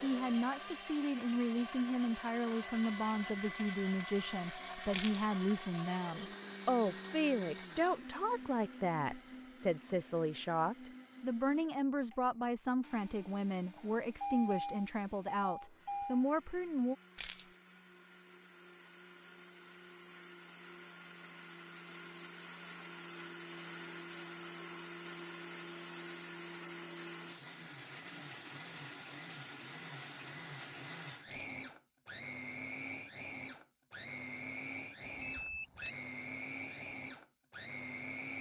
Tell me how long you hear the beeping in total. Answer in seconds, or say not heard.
5 s.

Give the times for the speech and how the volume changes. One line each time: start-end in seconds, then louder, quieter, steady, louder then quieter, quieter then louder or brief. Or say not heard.
0.0-16.9 steady.